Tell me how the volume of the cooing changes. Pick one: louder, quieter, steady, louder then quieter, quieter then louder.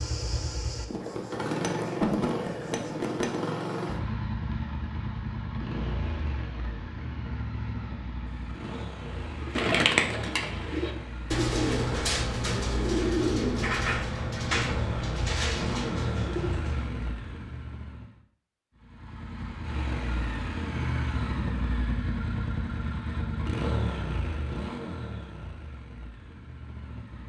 quieter.